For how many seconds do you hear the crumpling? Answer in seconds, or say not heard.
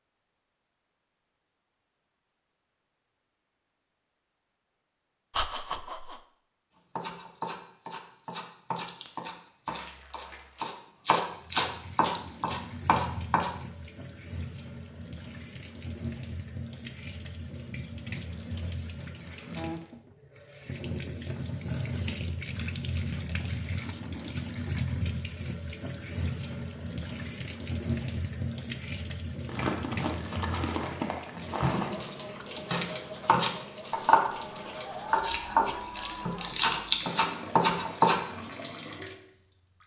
4 s.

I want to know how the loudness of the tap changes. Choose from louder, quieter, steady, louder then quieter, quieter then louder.
louder then quieter.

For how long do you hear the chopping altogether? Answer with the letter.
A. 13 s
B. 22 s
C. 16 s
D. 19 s
A.